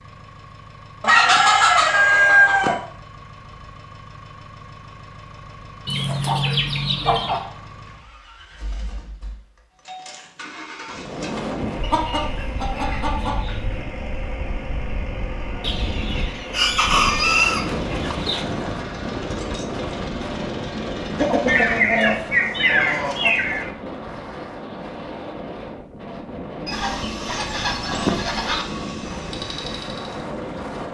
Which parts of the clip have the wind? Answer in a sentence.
The wind can be heard from 10.8 to 30.9 s.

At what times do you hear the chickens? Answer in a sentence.
You can hear the chickens from 1.0 to 2.8 s, from 5.8 to 7.4 s, from 11.8 to 13.8 s, from 15.6 to 18.4 s, from 21.1 to 23.7 s and from 26.6 to 28.6 s.